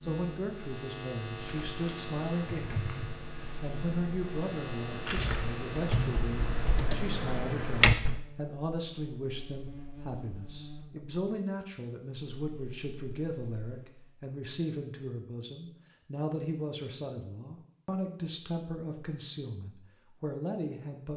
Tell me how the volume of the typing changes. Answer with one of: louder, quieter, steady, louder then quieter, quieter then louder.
quieter then louder.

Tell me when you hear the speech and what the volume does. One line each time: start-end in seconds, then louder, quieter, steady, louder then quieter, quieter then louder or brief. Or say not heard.
0.0-21.1 steady.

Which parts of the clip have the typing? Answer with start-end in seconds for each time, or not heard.
1.4-8.2.